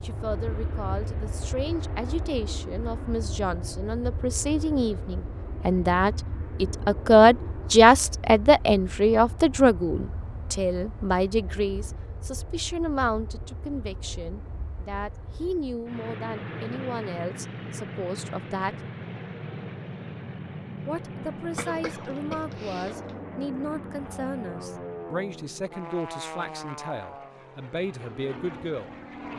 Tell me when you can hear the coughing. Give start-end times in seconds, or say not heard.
21.6-23.1.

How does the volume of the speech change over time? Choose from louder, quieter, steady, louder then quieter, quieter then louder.
louder then quieter.